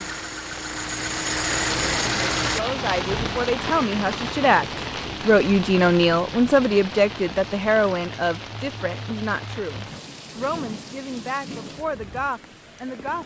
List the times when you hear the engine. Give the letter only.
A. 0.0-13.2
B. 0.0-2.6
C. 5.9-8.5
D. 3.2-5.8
B.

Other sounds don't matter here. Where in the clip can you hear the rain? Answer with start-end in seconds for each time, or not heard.
0.0-13.2.